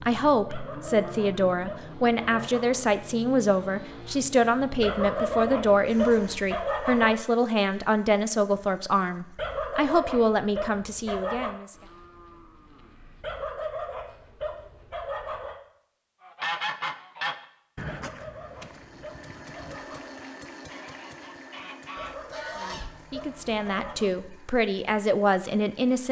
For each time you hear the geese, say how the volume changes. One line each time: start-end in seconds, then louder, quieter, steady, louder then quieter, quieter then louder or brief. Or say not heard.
16.2-23.0 quieter then louder.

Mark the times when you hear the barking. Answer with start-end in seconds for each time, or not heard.
0.5-2.9, 4.8-7.2, 9.3-11.6, 13.2-15.6, 17.9-20.2, 21.9-24.1.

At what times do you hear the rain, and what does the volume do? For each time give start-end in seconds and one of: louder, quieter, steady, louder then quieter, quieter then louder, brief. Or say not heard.
not heard.